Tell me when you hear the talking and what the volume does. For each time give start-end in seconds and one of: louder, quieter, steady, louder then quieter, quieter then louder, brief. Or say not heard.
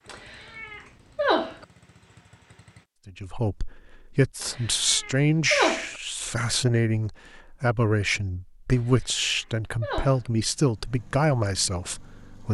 3.0-12.4 steady.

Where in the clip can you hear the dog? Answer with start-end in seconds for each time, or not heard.
not heard.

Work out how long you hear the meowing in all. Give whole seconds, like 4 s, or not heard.
5 s.